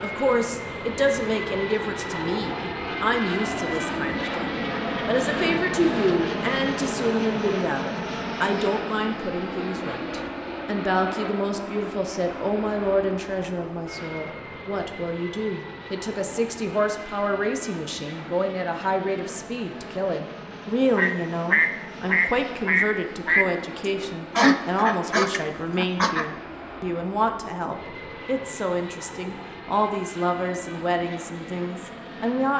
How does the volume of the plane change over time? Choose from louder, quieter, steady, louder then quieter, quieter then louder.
quieter.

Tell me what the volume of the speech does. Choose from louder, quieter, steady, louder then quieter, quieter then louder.
steady.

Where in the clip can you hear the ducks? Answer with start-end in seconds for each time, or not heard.
20.9-23.4, 24.4-26.2.